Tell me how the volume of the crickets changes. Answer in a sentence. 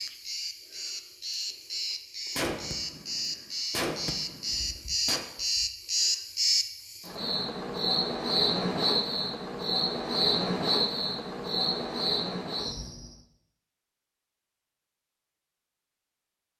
The loudness of the crickets goes up.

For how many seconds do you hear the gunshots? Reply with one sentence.
The gunshots can be heard for 3 seconds in total.